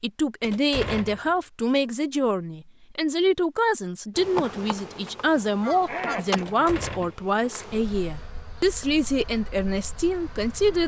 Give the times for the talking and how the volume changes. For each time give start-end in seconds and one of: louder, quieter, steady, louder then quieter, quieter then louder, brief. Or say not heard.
0.0-10.8 steady.